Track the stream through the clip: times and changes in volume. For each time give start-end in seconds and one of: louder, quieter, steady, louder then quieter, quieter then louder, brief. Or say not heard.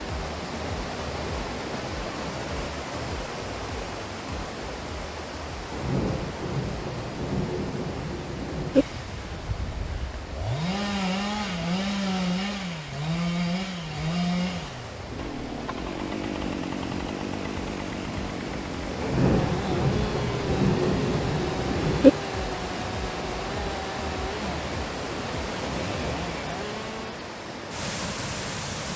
0.0-28.9 quieter then louder.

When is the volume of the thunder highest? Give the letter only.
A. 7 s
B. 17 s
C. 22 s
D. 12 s
C.